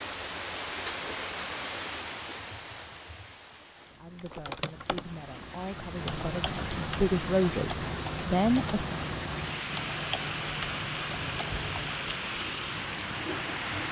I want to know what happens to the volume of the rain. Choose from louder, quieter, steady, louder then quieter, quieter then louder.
quieter then louder.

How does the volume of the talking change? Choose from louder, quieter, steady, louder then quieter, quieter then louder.
louder.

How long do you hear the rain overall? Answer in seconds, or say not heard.
14 s.